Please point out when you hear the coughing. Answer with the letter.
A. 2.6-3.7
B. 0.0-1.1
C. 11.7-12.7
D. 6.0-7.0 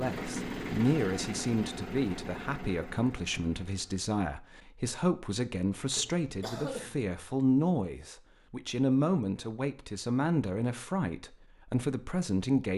D.